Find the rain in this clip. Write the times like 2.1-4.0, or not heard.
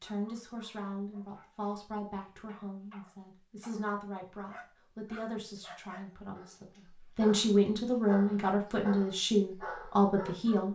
not heard.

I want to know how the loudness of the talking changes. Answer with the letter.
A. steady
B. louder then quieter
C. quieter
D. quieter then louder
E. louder
E.